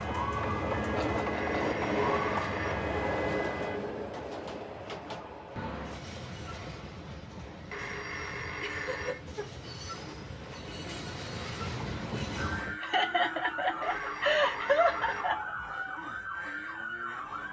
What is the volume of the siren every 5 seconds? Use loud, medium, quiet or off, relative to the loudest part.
loud, off, loud, loud.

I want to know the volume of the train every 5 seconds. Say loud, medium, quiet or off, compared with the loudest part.
loud, medium, medium, off.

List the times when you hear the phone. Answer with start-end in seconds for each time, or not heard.
1.3-2.8, 7.7-9.2, 13.8-15.3.